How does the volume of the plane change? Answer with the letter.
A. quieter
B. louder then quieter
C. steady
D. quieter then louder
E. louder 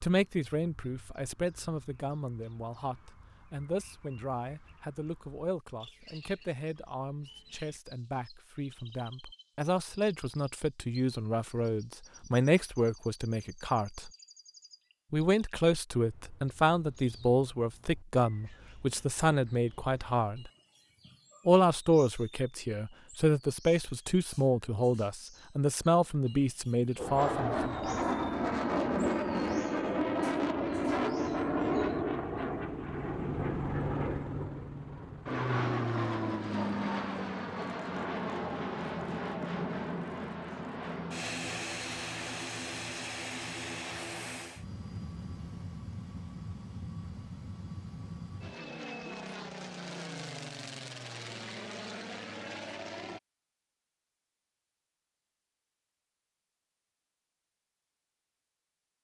A.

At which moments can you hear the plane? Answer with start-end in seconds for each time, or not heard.
26.9-53.2.